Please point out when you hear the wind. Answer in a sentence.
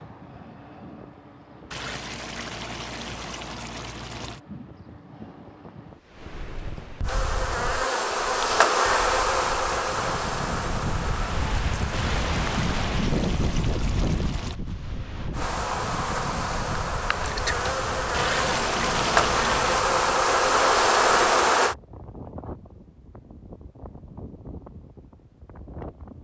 You can hear the wind from 0.0 to 26.1 s.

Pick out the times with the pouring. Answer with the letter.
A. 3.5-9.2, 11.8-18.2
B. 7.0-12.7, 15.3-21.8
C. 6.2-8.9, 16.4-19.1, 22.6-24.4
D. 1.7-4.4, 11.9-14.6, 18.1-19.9
D.